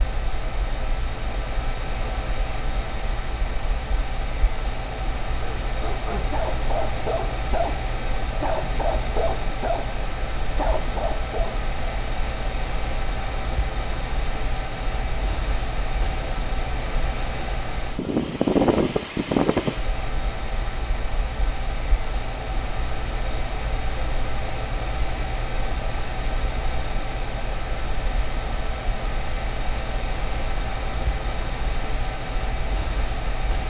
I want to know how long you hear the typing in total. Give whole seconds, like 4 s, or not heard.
not heard.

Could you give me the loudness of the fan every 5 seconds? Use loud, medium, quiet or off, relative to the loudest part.
medium, medium, medium, loud, medium, medium, medium.